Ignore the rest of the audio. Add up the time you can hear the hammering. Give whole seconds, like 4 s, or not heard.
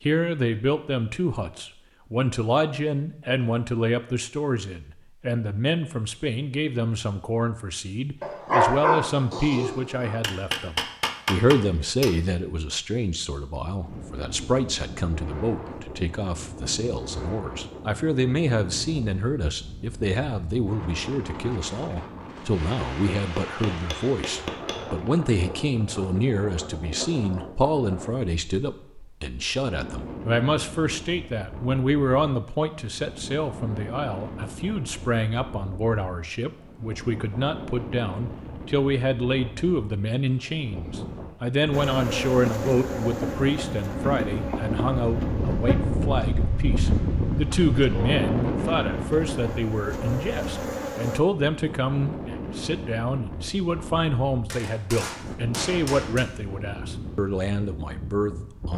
6 s.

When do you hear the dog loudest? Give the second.
9 s.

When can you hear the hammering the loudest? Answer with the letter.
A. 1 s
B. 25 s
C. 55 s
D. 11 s
D.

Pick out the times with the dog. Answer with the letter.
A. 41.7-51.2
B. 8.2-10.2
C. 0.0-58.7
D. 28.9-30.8
B.